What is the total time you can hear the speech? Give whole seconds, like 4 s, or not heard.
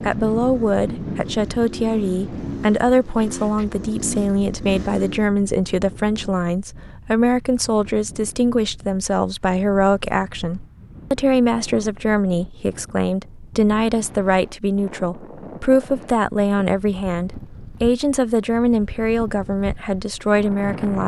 21 s.